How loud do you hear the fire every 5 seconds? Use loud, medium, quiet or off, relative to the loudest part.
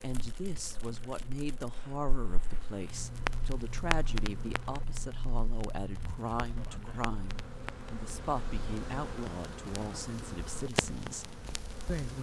loud, medium, loud.